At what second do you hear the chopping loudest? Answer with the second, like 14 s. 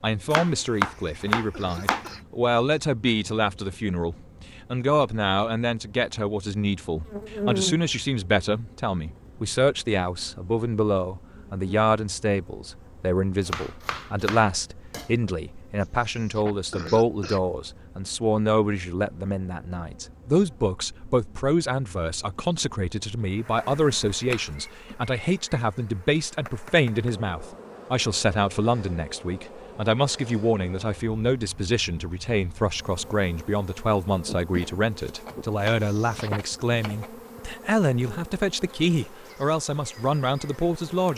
1 s.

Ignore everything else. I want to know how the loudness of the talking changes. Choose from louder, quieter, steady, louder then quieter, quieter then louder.
steady.